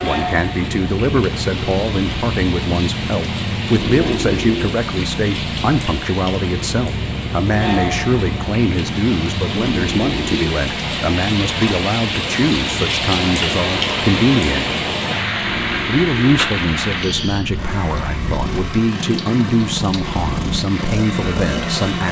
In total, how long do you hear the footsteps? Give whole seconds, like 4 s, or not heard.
not heard.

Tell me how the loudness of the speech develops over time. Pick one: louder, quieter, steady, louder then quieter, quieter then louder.
steady.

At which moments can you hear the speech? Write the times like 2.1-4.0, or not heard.
0.0-14.8, 15.8-22.0.